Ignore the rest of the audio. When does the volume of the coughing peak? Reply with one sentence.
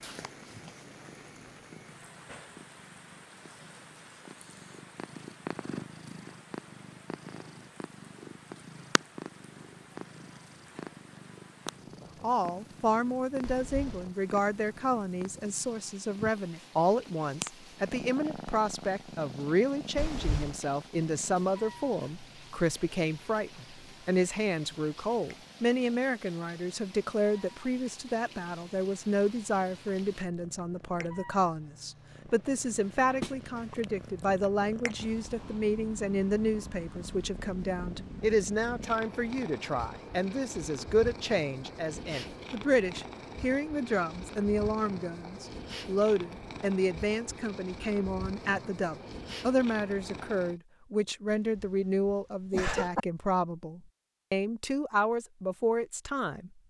The loudest moment of the coughing is at 53 seconds.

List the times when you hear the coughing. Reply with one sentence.
The coughing can be heard from 13.4 to 14.1 s, from 19.9 to 20.6 s and from 51.5 to 53.0 s.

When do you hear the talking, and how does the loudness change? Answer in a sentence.
The talking can be heard from 12.2 to 56.5 s, at a steady volume.